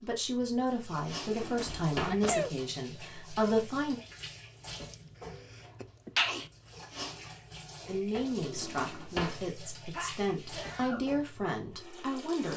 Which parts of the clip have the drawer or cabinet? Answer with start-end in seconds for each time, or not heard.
1.2-2.2, 8.4-9.4.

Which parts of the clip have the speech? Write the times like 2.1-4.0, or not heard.
0.0-4.0, 7.8-12.5.